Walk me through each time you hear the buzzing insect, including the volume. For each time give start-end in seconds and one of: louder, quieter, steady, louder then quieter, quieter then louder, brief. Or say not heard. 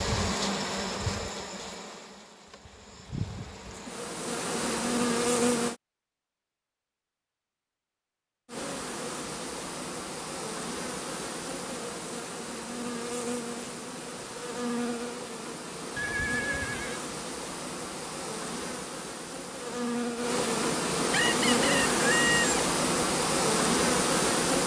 0.0-5.8 quieter then louder
8.4-24.6 louder.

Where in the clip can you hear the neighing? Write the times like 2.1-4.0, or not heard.
15.9-17.0.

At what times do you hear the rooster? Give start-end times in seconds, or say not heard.
21.1-22.6.